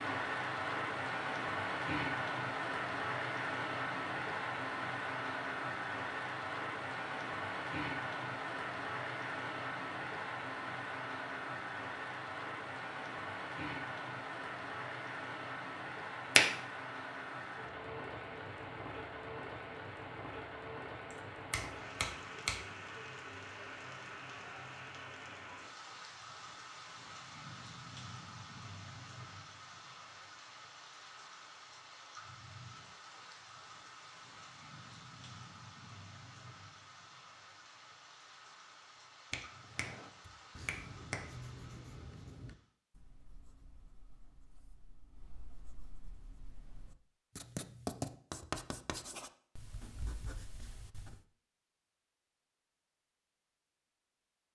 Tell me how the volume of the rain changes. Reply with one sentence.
The loudness of the rain goes down.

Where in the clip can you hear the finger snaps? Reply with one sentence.
The finger snaps can be heard from 21.1 to 22.6 s and from 39.3 to 41.2 s.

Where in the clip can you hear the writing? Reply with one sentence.
The writing can be heard from 39.5 to 51.2 s.